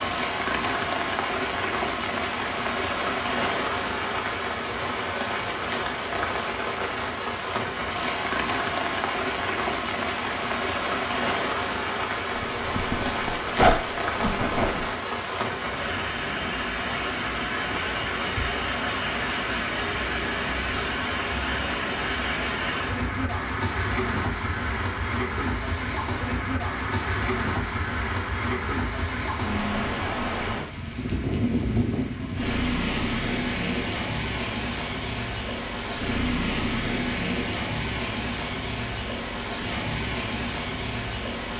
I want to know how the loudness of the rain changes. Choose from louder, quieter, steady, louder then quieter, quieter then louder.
steady.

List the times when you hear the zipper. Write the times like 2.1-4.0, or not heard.
12.3-14.8.